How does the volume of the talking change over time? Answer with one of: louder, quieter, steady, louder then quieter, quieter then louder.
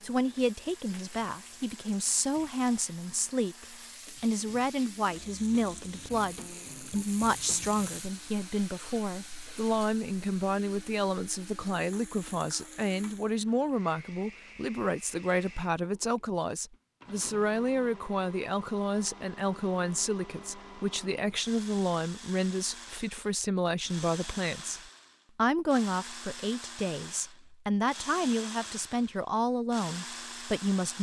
steady.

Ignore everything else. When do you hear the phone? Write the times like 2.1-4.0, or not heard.
not heard.